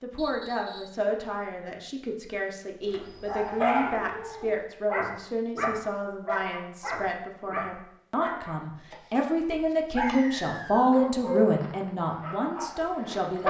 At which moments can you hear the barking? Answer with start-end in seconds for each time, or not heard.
2.9-13.4.